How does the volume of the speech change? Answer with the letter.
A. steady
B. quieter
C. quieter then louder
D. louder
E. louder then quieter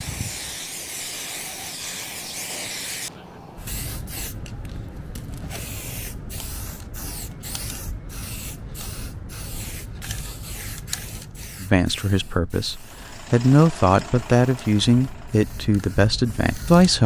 E.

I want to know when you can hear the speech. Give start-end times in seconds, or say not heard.
11.6-17.0.